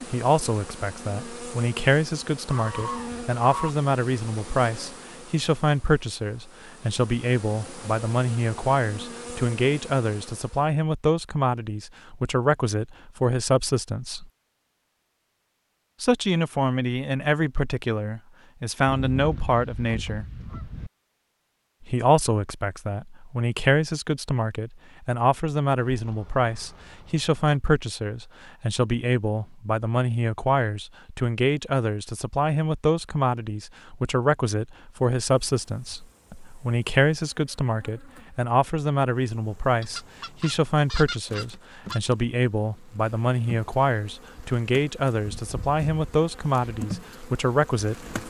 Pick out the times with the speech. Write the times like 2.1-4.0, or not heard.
0.1-14.2, 16.0-20.2, 21.8-48.2.